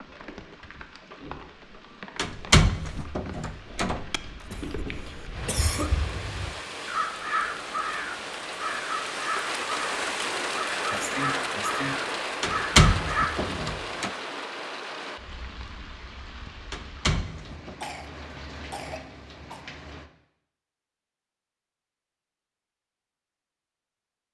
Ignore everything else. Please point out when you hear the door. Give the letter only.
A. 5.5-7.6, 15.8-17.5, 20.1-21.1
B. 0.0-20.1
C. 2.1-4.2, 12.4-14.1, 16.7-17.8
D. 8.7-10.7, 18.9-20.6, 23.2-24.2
C.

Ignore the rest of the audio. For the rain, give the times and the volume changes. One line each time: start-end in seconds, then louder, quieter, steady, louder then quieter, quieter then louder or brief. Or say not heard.
0.0-20.1 louder then quieter.